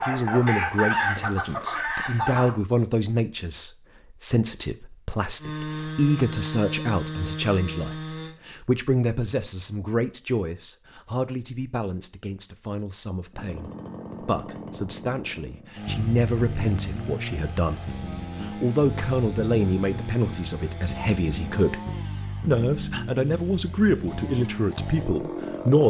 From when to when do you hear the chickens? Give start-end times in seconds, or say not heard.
0.0-2.5.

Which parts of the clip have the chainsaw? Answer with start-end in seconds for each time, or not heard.
5.4-8.3, 13.3-25.8.